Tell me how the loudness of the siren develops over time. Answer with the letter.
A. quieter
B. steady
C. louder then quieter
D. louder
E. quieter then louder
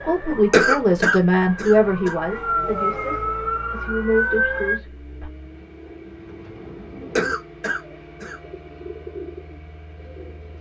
D.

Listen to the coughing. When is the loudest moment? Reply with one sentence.
The loudest moment of the coughing is at 1 second.